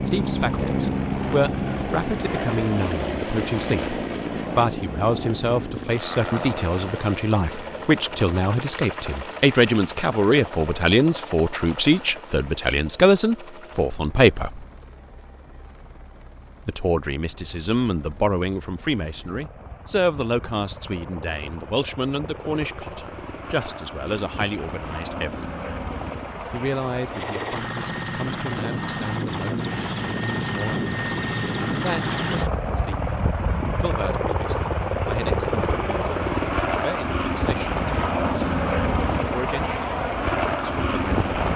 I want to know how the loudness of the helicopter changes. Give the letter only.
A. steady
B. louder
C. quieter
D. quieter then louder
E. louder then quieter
D.